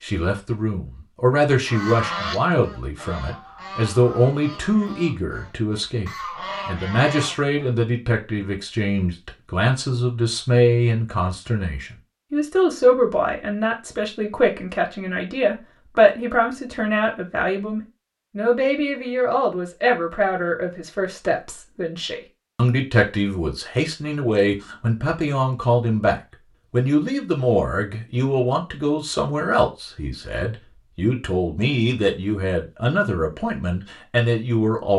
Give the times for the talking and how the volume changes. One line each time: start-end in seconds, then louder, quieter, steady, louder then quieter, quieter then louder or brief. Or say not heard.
0.0-34.9 steady.